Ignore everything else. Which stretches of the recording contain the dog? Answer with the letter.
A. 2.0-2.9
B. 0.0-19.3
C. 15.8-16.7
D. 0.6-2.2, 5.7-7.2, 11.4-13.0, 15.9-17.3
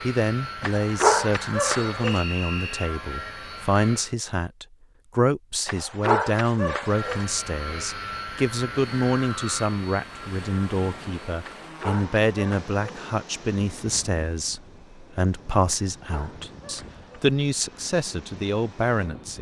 D.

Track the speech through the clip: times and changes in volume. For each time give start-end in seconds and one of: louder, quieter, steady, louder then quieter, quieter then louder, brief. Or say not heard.
0.0-19.3 steady.